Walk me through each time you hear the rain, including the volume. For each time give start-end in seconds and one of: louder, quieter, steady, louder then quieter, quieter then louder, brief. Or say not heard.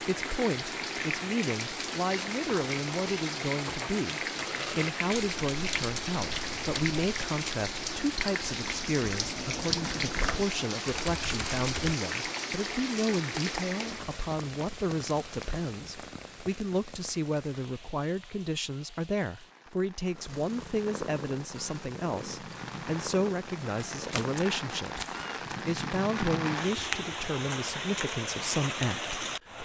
0.0-29.6 quieter then louder.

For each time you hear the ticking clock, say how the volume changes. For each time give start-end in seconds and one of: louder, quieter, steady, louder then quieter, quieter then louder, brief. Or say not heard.
not heard.